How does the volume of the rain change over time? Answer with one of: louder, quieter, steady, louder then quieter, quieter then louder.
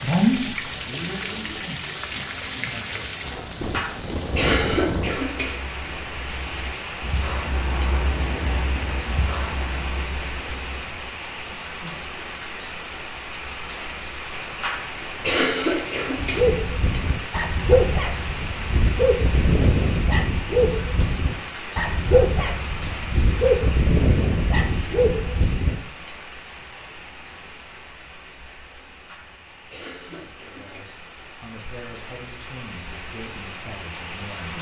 quieter.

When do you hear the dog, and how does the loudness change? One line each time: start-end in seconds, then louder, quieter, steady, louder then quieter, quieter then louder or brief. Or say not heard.
16.1-25.8 steady.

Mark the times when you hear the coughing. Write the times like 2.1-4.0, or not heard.
3.7-5.5, 14.6-16.4, 29.1-30.9.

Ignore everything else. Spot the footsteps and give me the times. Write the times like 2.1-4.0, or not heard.
not heard.